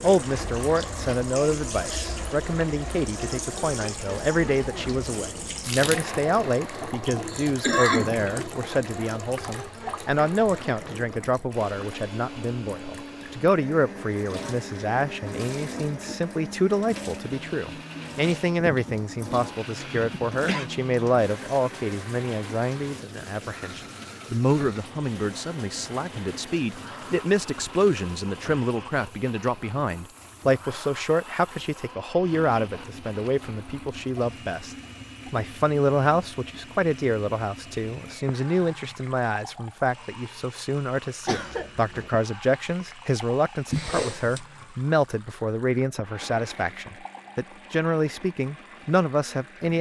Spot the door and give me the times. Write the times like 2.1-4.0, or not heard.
43.7-44.4.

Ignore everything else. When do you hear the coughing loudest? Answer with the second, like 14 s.
8 s.